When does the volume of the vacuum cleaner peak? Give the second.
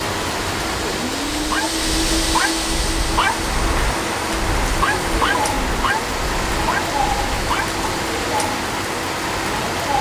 2 s.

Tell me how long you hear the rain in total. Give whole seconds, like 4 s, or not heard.
10 s.